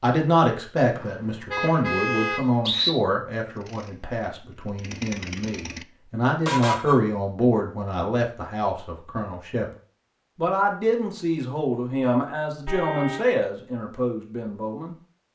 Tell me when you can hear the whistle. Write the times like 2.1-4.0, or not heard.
0.9-2.9.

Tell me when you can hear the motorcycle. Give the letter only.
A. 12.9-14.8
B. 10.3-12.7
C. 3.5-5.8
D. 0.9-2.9
C.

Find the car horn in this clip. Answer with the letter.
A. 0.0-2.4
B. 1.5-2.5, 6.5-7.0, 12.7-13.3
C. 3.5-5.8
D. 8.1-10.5
B.